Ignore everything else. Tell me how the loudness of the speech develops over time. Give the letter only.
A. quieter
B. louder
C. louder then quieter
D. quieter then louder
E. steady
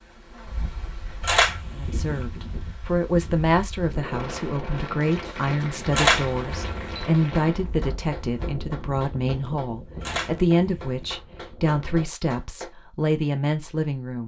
E.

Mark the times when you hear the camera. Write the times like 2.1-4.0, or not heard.
1.2-2.2, 5.9-7.0, 10.0-11.0.